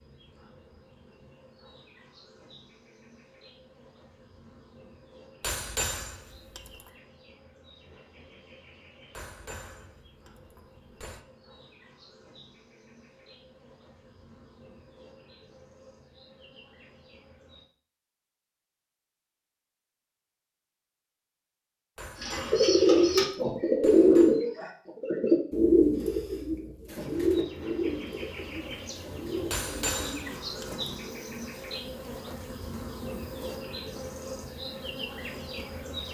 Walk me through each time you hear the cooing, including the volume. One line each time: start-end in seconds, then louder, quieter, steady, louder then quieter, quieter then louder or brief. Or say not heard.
22.2-31.2 quieter.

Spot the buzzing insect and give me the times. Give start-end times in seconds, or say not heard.
0.0-17.6, 27.0-36.0.